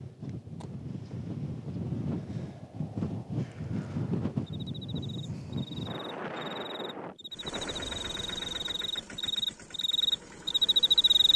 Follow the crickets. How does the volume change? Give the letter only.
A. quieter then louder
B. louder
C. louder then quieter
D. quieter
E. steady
B.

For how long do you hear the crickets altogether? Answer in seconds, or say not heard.
7 s.